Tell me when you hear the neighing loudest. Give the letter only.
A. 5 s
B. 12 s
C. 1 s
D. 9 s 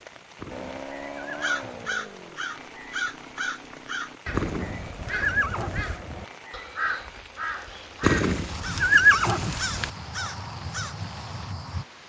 D.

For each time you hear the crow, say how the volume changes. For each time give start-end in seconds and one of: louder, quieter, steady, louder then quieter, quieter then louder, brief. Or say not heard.
0.5-11.8 steady.